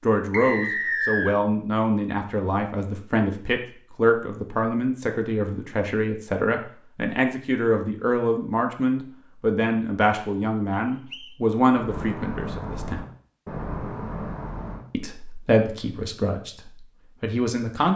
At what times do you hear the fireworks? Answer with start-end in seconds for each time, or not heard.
11.7-14.8.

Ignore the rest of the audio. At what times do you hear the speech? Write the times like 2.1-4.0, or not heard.
0.0-13.1, 14.9-17.9.